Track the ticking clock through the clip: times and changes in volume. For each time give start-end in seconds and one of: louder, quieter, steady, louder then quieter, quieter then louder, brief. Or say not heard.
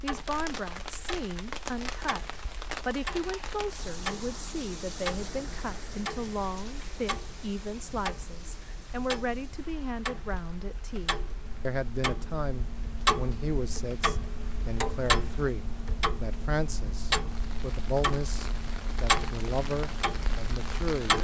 0.0-21.1 louder.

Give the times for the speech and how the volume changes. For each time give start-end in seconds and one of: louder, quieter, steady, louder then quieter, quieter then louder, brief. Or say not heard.
0.0-21.1 steady.